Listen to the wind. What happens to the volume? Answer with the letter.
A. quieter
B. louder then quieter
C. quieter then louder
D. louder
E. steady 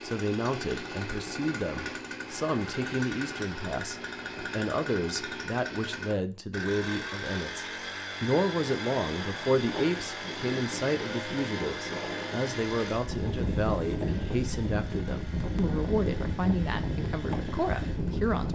D.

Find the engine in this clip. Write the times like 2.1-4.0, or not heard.
0.0-18.4.